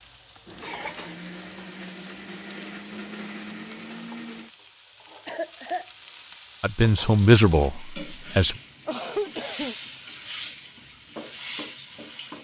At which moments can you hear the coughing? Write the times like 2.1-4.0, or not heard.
0.6-1.1, 5.2-5.8, 8.8-9.8.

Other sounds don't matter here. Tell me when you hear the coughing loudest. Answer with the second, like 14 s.
9 s.